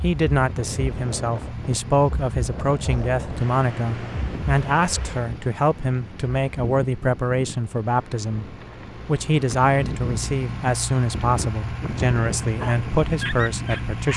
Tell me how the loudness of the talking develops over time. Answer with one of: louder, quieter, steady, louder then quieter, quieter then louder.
steady.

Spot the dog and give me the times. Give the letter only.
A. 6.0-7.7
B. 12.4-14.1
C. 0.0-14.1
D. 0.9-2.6
B.